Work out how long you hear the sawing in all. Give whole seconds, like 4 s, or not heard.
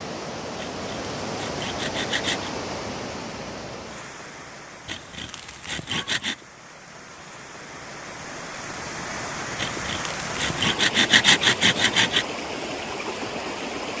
6 s.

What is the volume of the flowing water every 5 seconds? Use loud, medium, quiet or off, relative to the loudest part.
loud, medium, loud.